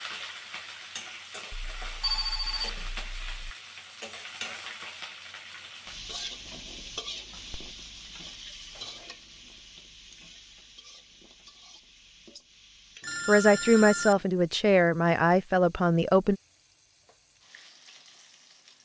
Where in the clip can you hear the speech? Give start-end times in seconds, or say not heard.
13.2-16.4.